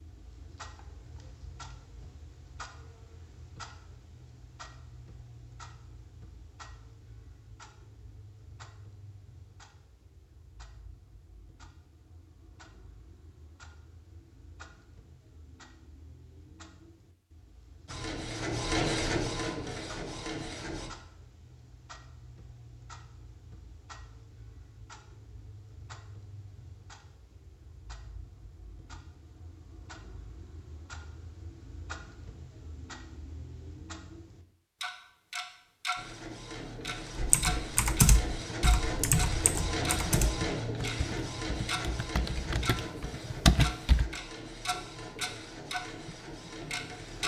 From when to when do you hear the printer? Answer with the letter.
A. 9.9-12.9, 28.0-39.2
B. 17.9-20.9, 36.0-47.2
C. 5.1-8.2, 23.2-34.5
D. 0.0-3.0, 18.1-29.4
B.